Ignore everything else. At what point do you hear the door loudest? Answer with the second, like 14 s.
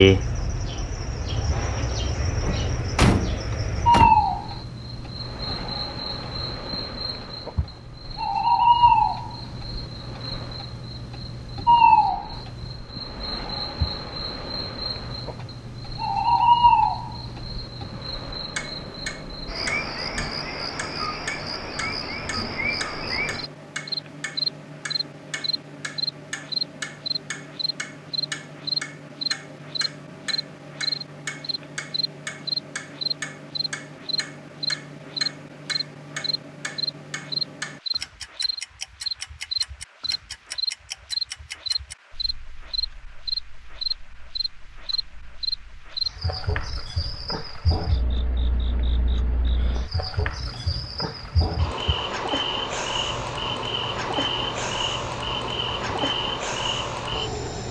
3 s.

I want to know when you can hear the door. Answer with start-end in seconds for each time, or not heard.
2.5-4.3.